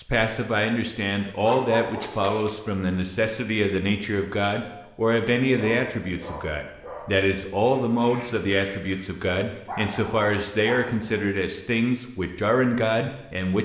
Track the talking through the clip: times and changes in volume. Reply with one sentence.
The talking can be heard from 0.0 to 13.6 s, at a steady volume.